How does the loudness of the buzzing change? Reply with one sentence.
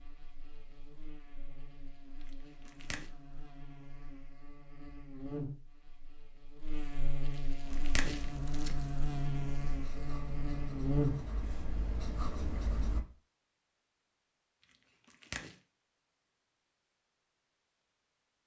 The volume of the buzzing goes up.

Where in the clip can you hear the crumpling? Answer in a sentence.
The crumpling can be heard from 2.3 to 3.1 s, from 7.7 to 8.8 s and from 14.7 to 15.6 s.